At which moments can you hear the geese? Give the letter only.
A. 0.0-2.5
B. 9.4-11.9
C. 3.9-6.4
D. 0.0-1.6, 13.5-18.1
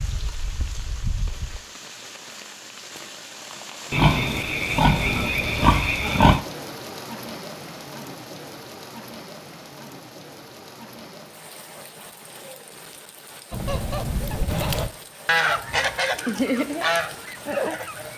D.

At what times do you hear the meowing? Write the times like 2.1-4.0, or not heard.
not heard.